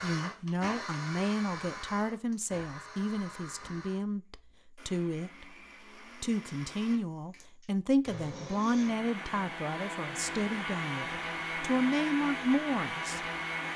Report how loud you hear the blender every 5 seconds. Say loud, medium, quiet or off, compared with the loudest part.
medium, medium, loud.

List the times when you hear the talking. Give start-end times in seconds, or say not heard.
0.0-5.5, 6.2-13.2.